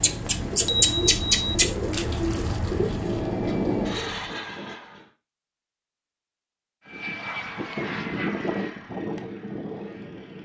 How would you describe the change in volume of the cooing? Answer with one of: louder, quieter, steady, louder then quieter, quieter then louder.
quieter.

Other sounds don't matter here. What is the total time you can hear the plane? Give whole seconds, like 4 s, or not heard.
9 s.